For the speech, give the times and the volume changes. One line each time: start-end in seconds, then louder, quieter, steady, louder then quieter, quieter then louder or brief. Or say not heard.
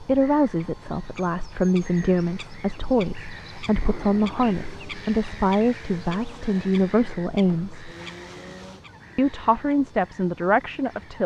0.0-7.9 steady
9.2-11.2 brief.